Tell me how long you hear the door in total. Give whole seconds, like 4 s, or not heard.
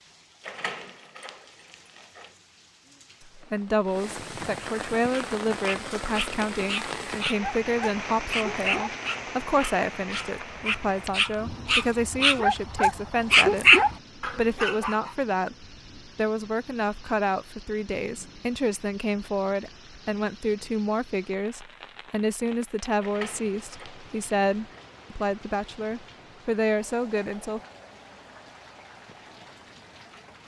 4 s.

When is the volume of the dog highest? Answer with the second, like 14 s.
14 s.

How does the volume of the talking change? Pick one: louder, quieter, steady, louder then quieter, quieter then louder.
steady.